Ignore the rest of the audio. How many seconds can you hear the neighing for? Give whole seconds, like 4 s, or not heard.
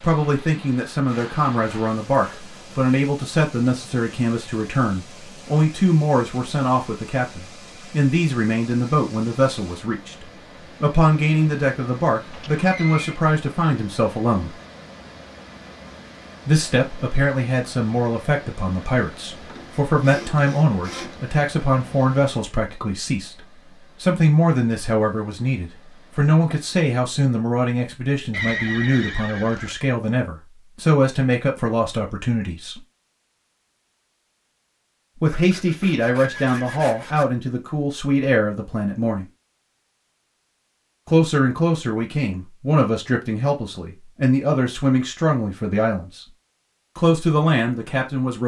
3 s.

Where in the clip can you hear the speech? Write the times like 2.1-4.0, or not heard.
0.0-14.6, 16.4-32.8, 35.2-39.2, 41.0-46.2, 47.0-48.4.